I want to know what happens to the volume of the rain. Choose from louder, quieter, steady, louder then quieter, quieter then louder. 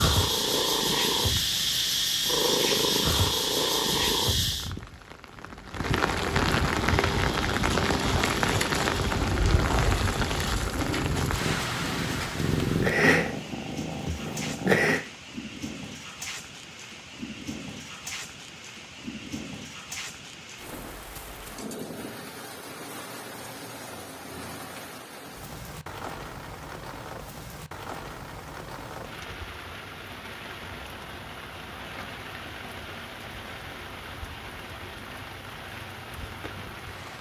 quieter.